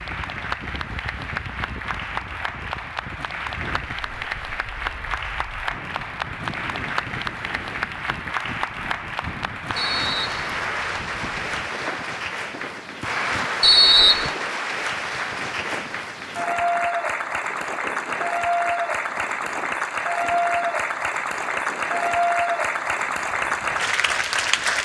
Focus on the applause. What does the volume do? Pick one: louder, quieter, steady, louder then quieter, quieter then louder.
louder.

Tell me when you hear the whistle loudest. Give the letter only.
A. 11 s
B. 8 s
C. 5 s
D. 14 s
D.